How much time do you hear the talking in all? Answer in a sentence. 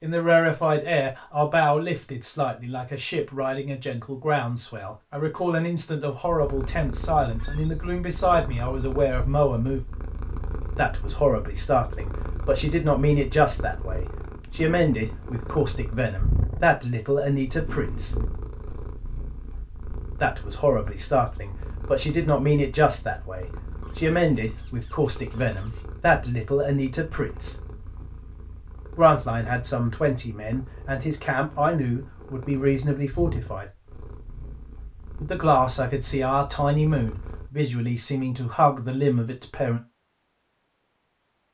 You can hear the talking for 34 seconds altogether.